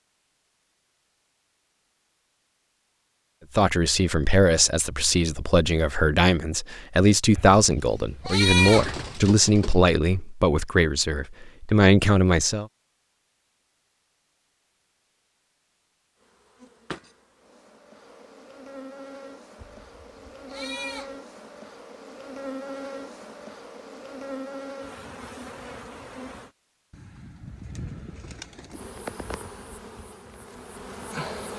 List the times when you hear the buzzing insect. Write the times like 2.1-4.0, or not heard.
16.2-26.5, 28.7-31.5.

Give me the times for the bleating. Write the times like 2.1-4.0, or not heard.
7.3-8.9, 19.6-21.1.